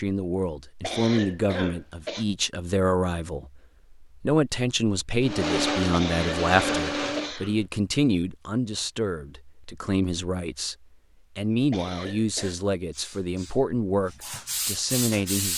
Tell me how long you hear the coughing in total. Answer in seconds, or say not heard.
4 s.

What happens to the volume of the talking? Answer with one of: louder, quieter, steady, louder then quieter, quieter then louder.
steady.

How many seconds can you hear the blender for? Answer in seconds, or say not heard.
2 s.